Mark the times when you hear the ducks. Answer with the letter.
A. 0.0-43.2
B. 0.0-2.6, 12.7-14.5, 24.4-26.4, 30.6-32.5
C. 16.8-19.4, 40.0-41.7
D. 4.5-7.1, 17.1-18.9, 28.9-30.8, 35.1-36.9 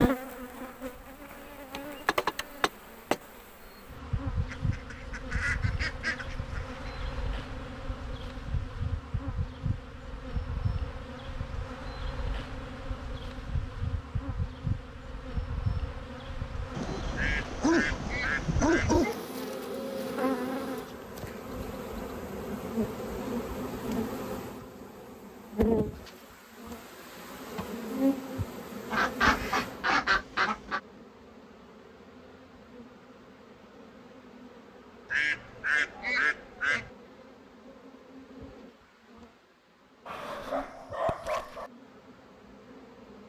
D.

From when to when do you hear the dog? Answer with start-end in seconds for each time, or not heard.
16.8-19.4, 40.0-41.7.